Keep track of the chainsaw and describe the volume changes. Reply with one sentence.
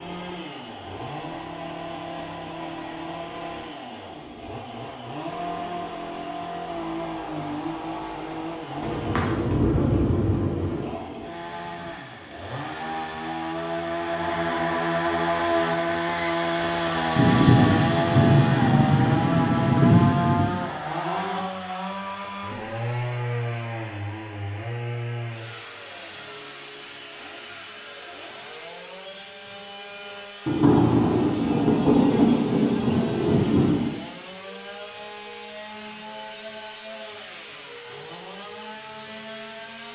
The volume of the chainsaw goes up, then down.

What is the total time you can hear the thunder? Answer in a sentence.
You can hear the thunder for 9 seconds altogether.